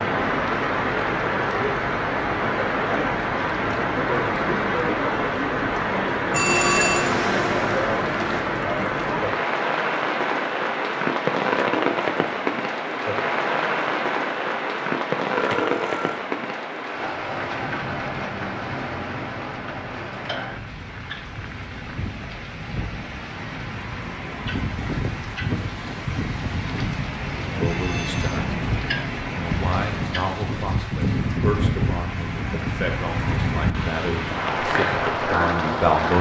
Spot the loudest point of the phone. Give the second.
7 s.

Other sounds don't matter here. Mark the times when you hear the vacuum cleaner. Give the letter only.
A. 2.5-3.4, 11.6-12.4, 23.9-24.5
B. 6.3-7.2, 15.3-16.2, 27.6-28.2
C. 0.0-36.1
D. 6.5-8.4
D.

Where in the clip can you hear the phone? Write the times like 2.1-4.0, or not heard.
6.3-7.2, 15.3-16.2, 27.6-28.2.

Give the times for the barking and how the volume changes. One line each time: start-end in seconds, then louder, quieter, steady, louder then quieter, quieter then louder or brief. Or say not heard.
not heard.